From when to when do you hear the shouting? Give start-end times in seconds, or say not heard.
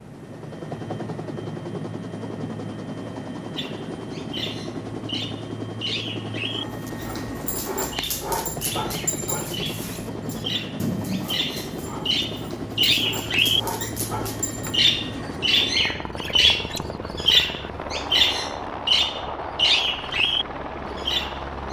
not heard.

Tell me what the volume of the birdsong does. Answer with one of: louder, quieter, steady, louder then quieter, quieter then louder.
louder.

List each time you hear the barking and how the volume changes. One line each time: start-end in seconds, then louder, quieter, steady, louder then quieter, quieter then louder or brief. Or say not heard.
6.5-14.8 quieter then louder.